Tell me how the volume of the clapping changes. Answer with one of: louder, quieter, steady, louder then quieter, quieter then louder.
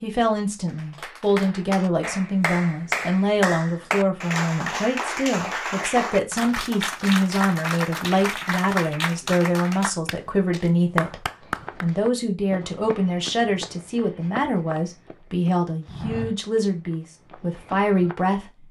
steady.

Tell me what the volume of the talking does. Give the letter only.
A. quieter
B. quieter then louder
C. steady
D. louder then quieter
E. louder
C.